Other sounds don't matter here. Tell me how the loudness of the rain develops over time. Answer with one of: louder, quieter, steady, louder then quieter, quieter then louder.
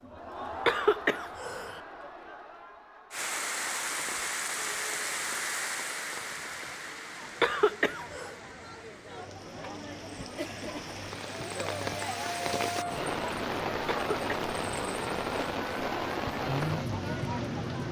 quieter then louder.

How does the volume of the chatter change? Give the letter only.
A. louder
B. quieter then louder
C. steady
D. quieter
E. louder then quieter
B.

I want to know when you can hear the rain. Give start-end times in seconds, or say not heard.
3.1-17.8.